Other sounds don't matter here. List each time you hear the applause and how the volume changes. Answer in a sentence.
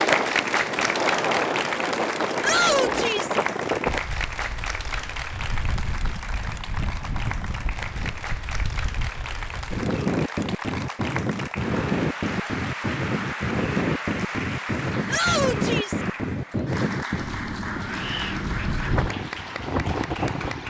The applause can be heard from 0.0 to 20.6 s, getting quieter.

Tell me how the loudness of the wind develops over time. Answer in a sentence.
The volume of the wind goes down, then up.